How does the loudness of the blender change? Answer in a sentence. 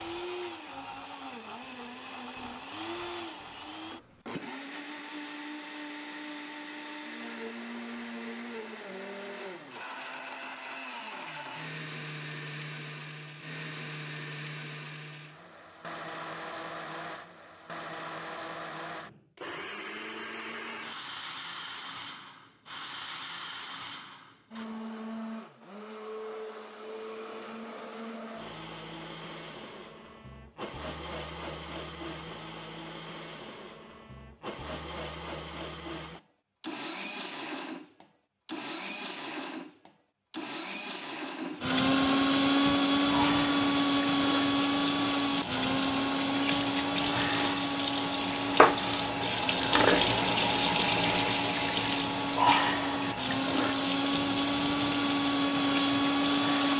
The volume of the blender goes up.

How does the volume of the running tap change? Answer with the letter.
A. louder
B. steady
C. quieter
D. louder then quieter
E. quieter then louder
D.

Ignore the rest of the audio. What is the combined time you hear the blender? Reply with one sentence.
You can hear the blender for 57 seconds altogether.